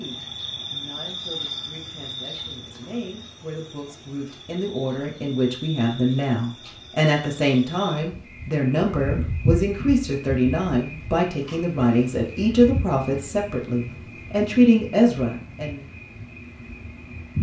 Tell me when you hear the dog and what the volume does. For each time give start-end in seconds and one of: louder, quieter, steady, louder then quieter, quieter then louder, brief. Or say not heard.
not heard.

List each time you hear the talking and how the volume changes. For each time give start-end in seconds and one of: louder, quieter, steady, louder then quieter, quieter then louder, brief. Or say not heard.
0.0-15.8 louder.